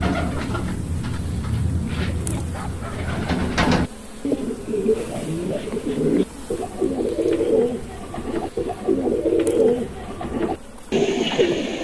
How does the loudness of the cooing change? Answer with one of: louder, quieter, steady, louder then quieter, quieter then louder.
louder.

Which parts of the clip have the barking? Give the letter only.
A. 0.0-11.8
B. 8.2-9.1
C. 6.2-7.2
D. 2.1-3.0
D.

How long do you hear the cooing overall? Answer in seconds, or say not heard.
12 s.